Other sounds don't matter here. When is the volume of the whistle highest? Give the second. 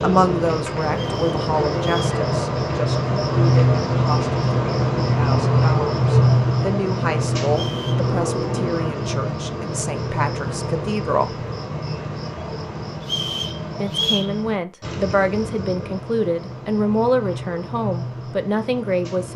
14 s.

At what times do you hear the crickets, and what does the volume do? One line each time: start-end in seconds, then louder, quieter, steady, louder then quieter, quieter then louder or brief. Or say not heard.
0.0-19.3 quieter.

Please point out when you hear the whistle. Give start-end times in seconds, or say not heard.
0.9-2.2, 7.5-8.1, 13.0-14.3.